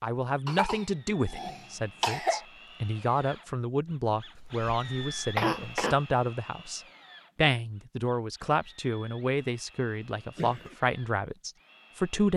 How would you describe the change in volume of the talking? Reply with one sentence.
The volume of the talking stays about the same.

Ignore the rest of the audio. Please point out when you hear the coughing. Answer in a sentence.
You can hear the coughing from 0.5 to 2.5 s, from 4.3 to 6.0 s and from 10.2 to 10.8 s.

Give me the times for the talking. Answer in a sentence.
The talking can be heard from 0.0 to 12.3 s.